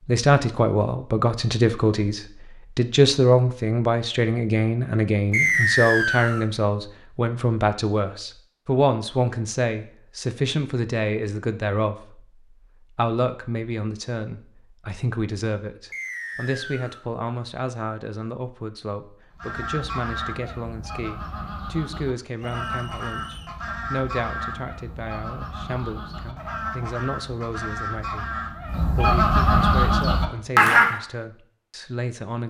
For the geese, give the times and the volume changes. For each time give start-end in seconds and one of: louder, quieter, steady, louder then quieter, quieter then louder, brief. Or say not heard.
19.4-30.9 louder.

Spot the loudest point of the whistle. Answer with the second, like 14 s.
6 s.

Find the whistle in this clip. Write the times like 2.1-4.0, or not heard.
5.3-6.5, 15.9-17.1, 22.4-23.6.